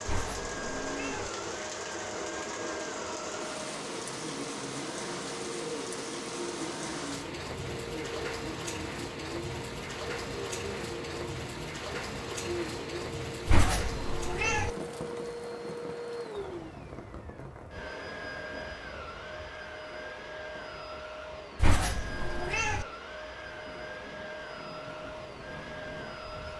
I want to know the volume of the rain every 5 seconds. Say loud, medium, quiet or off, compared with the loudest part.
loud, loud, loud, medium, quiet, medium.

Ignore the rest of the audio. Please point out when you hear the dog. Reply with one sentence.
The dog can't be heard in this clip.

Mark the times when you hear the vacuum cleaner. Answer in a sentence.
The vacuum cleaner can be heard from 0.0 to 26.5 s.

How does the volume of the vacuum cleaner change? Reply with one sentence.
The loudness of the vacuum cleaner stays about the same.